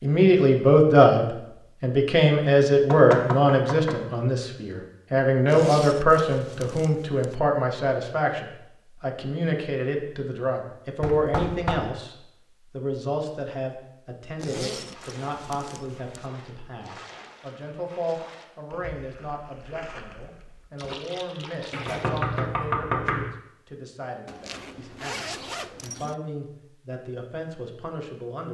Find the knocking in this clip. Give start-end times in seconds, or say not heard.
2.8-4.0, 11.0-11.8, 21.7-23.3.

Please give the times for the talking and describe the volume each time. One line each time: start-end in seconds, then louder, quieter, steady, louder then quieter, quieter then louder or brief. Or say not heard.
0.0-28.4 quieter.